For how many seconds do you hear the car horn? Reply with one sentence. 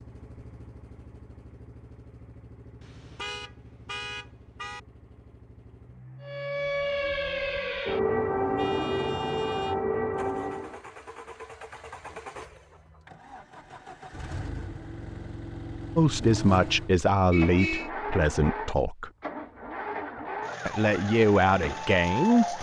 You can hear the car horn for 4 seconds altogether.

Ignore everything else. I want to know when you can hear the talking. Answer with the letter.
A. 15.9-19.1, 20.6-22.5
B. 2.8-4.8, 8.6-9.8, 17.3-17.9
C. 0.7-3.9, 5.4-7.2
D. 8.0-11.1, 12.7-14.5
A.